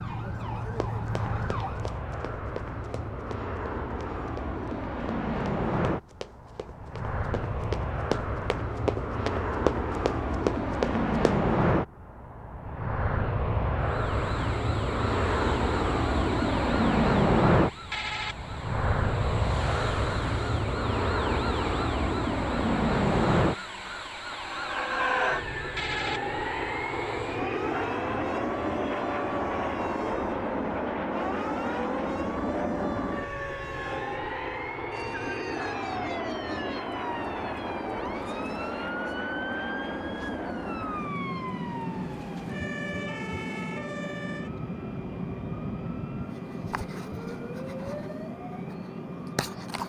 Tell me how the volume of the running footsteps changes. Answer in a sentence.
The volume of the running footsteps goes up.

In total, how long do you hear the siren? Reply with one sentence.
The siren can be heard for 38 seconds in total.